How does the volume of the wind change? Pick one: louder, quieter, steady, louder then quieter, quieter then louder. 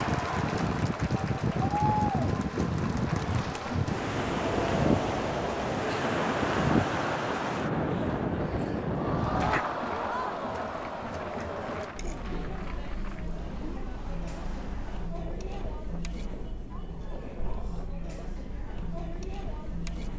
quieter.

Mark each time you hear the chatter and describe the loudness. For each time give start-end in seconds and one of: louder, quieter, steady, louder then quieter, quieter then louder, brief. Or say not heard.
0.0-20.1 quieter.